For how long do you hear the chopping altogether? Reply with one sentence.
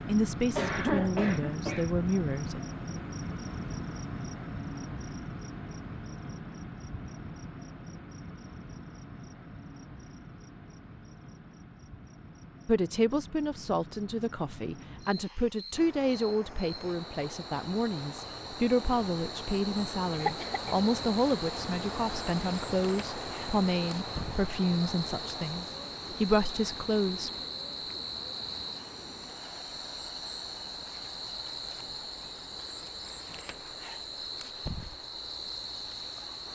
You can't hear the chopping here.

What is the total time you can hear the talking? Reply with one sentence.
You can hear the talking for 17 seconds altogether.